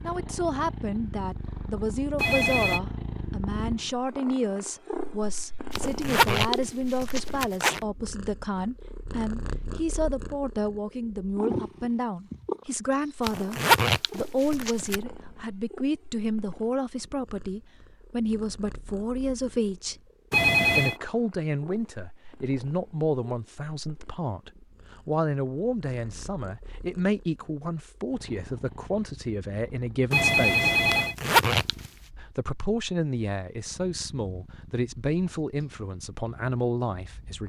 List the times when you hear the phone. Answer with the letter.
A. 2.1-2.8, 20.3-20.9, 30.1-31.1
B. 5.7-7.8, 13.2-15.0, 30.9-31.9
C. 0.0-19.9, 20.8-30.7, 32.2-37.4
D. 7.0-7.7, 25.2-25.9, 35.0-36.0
A.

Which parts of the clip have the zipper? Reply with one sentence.
The zipper can be heard from 5.7 to 7.8 s, from 13.2 to 15.0 s and from 30.9 to 31.9 s.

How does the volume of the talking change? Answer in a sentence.
The loudness of the talking stays about the same.